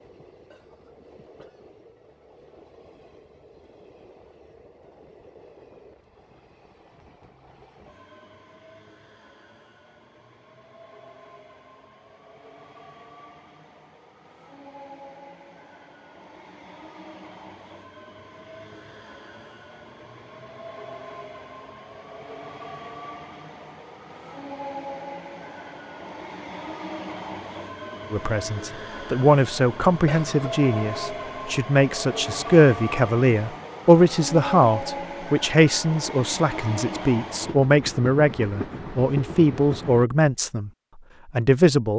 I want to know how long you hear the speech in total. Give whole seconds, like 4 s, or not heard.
13 s.